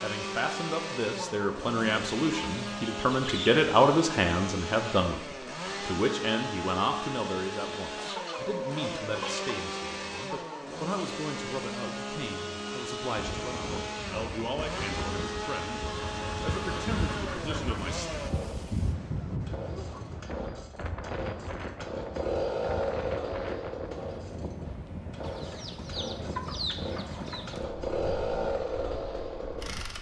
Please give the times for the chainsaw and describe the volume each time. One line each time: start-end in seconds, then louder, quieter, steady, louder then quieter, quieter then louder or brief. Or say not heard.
0.0-29.9 steady.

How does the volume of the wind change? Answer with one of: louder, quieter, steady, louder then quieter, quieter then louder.
louder then quieter.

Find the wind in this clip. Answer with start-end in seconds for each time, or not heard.
13.2-29.9.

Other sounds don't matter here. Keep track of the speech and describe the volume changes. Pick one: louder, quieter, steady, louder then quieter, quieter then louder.
quieter.